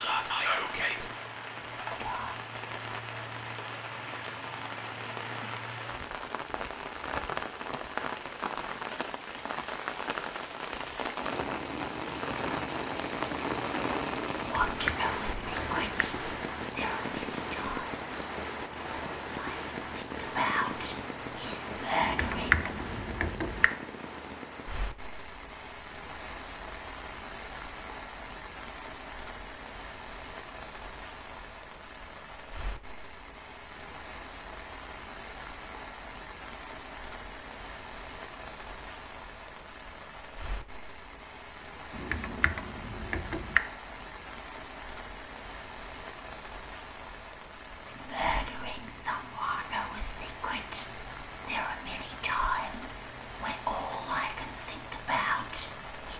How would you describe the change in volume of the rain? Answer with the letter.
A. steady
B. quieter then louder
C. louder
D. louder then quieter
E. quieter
E.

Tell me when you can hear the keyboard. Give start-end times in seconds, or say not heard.
14.3-16.0, 22.0-23.7, 41.9-43.6.